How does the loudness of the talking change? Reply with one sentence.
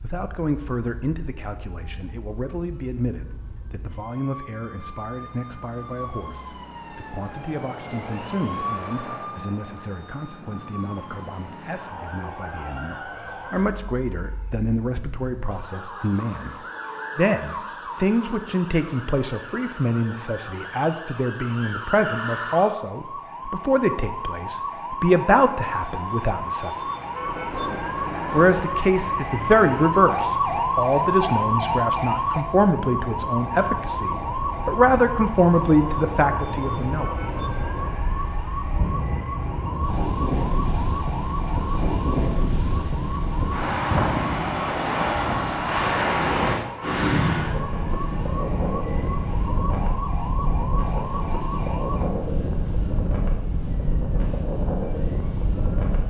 The volume of the talking goes up.